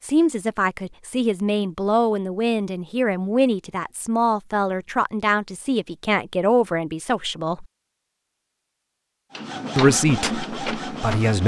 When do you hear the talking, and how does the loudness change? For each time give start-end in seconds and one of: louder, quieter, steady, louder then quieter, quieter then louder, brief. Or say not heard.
0.0-7.7 steady
9.8-11.4 brief.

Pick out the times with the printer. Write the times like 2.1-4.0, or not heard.
9.3-11.4.